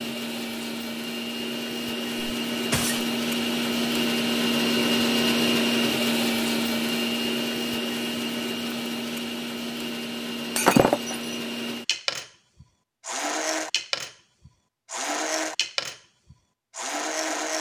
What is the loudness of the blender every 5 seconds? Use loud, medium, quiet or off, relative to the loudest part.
loud, loud, medium, loud.